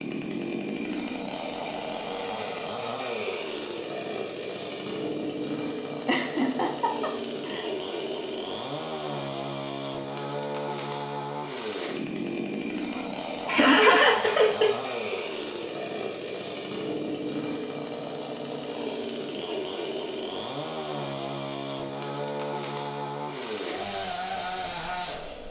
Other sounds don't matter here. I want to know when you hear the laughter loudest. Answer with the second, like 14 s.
14 s.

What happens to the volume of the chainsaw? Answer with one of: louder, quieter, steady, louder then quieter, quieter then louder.
steady.